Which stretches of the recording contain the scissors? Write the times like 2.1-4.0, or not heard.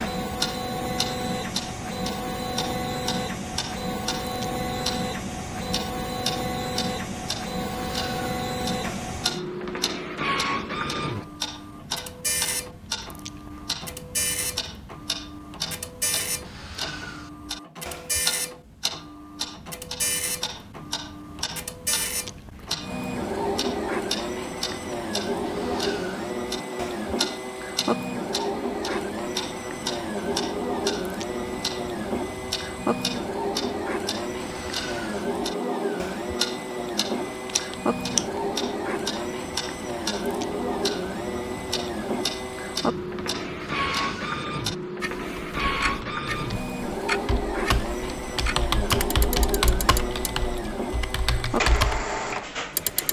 37.2-38.2.